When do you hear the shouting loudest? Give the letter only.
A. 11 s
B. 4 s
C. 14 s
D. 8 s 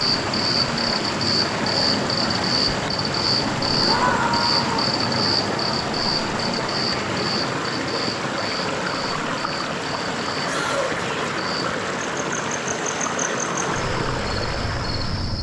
B.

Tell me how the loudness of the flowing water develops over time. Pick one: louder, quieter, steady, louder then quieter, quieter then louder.
steady.